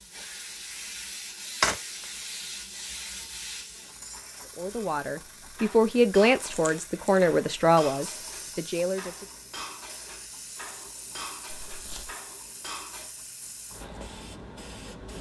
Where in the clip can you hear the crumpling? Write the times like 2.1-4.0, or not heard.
1.6-2.0, 6.3-7.3, 11.4-12.2.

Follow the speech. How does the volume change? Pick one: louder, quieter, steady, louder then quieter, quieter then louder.
louder then quieter.